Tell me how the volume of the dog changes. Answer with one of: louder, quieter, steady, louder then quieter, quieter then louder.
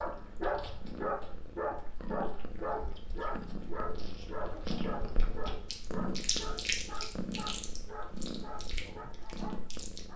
quieter.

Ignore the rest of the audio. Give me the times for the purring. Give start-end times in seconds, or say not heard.
0.0-10.1.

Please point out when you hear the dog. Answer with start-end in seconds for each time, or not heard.
0.0-10.1.